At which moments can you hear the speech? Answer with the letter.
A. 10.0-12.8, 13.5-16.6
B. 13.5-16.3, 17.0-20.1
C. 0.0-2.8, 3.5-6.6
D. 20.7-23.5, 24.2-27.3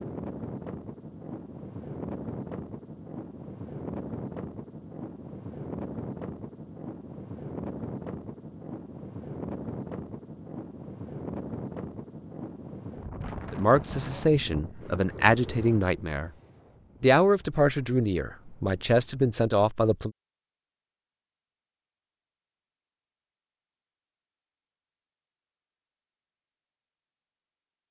B.